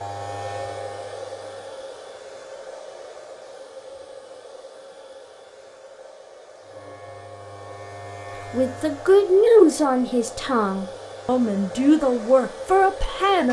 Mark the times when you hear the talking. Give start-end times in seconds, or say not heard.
8.5-13.4.